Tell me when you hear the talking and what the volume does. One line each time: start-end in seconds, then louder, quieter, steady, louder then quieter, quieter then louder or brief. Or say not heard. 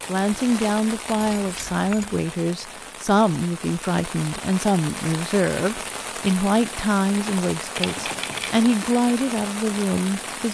0.1-10.4 steady.